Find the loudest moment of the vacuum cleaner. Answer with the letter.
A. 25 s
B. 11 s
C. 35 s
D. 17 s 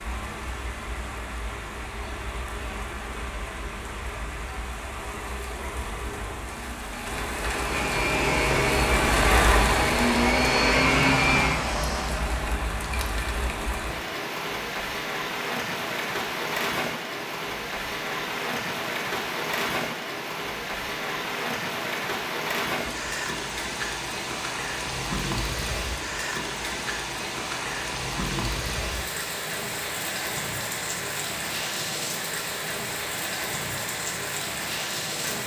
B.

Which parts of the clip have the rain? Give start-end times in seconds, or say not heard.
0.0-35.4.